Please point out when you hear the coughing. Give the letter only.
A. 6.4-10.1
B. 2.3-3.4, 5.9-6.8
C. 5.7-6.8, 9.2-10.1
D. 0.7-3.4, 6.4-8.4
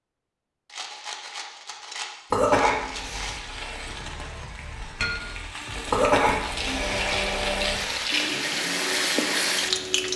B.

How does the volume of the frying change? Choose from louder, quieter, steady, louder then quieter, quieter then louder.
louder.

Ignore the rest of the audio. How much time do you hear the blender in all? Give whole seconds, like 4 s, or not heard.
4 s.